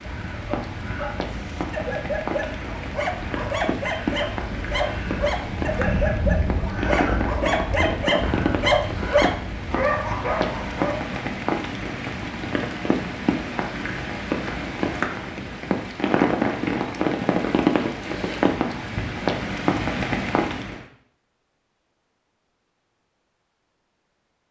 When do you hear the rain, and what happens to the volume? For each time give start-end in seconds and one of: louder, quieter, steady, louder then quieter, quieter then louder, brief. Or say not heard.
0.0-20.9 louder.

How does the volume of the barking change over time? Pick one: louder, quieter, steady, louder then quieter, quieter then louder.
louder.